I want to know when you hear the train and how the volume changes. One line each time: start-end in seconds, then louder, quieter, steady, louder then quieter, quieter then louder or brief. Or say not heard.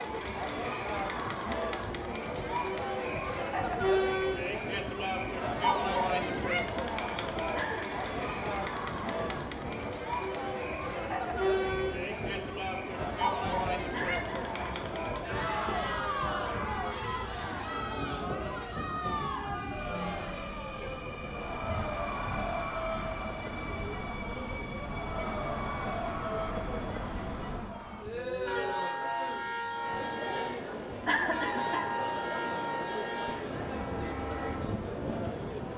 0.1-35.7 louder.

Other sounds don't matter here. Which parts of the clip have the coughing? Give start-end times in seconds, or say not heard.
7.5-8.1, 13.9-14.8, 31.1-31.9.